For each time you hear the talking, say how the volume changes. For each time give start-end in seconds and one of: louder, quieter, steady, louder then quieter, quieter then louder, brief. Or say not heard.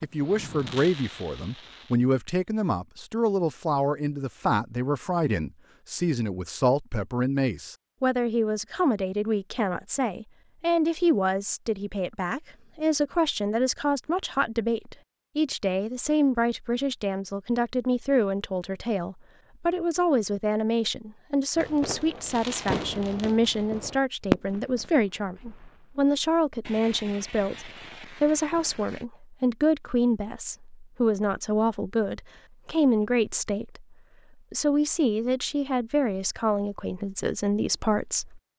0.0-38.4 steady.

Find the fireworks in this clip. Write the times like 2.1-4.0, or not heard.
0.0-2.0, 21.6-29.1.